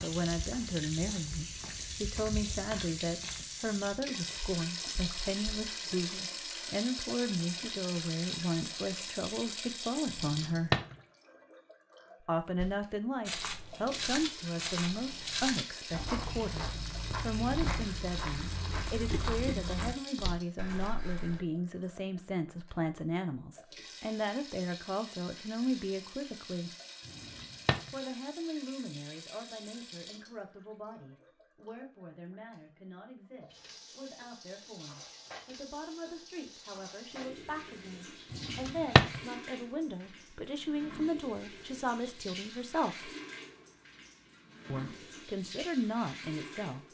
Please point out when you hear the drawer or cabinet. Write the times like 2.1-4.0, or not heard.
10.1-10.9, 27.1-27.9, 38.3-39.2.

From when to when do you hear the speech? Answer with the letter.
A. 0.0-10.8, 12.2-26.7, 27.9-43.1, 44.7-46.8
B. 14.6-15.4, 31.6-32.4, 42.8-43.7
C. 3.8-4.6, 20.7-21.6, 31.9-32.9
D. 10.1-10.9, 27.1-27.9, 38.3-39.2
A.